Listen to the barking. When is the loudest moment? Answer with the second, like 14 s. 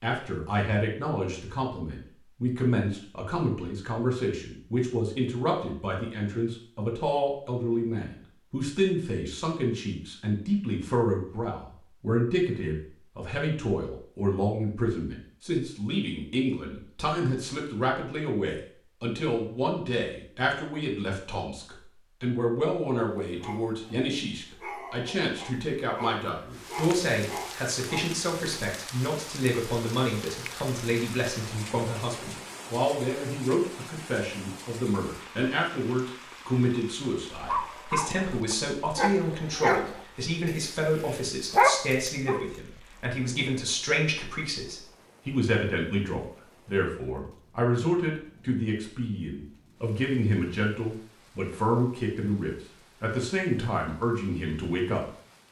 42 s.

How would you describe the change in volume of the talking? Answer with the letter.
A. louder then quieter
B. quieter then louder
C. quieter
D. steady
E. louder
D.